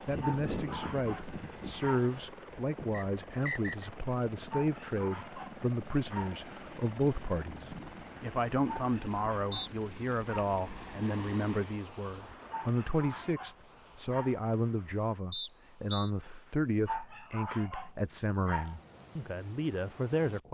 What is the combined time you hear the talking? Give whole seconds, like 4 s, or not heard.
20 s.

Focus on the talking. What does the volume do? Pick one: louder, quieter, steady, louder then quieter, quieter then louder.
steady.